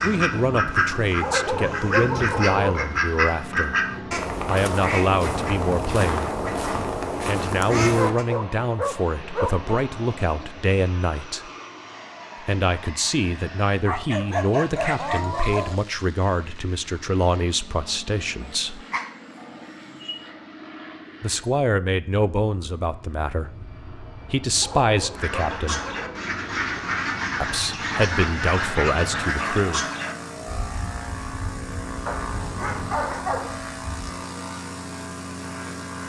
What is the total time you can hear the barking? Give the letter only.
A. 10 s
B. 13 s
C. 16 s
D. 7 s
A.